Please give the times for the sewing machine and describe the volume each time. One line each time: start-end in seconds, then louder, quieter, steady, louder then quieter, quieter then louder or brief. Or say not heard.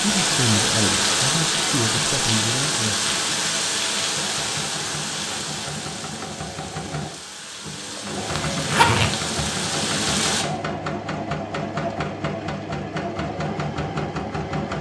0.0-14.7 louder.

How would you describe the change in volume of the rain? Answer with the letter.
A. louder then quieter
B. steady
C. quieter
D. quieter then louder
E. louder
D.